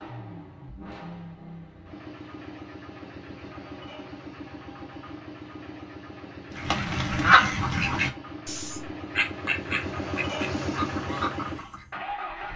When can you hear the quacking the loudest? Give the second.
7 s.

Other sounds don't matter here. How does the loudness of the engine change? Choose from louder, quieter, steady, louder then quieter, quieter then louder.
louder.